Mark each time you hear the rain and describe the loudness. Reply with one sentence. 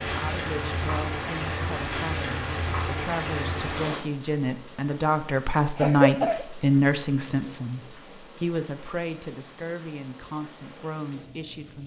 The rain can be heard from 0.0 to 11.8 s, getting quieter.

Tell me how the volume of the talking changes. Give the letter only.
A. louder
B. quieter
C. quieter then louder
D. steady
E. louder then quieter
E.